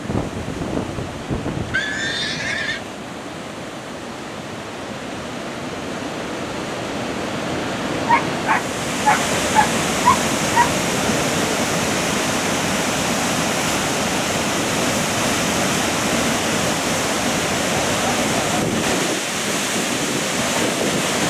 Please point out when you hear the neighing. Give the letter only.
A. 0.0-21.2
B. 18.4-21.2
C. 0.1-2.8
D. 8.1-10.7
C.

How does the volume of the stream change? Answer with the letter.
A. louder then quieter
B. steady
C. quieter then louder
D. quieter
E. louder
E.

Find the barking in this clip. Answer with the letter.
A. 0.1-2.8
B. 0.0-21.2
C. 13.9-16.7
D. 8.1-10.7
D.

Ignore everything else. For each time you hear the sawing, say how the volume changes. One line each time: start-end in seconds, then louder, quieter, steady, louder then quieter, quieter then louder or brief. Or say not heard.
not heard.